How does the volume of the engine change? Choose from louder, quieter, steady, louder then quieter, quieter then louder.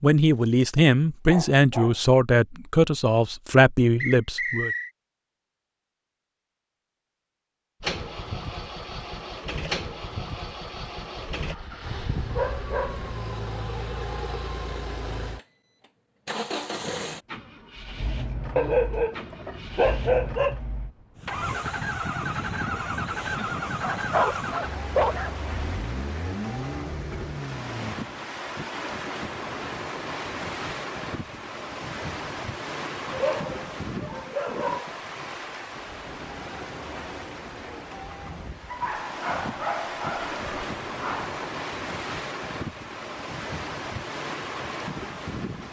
steady.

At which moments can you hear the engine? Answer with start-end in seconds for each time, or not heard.
7.8-27.9.